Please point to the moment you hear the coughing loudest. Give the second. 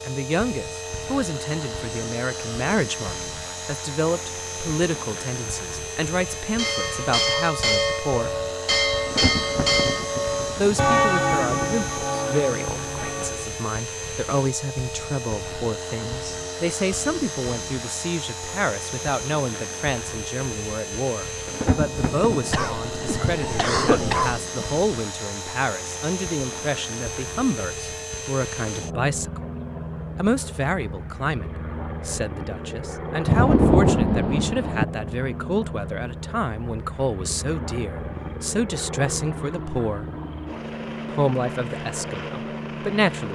24 s.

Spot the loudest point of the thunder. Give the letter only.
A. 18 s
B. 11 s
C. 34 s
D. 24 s
C.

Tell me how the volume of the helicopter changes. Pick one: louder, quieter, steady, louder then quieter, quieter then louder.
steady.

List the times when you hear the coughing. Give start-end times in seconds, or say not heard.
22.5-24.4.